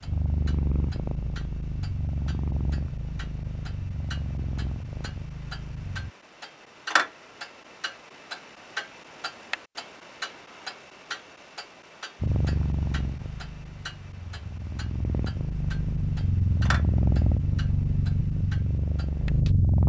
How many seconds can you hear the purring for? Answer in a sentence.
You can hear the purring for 14 seconds altogether.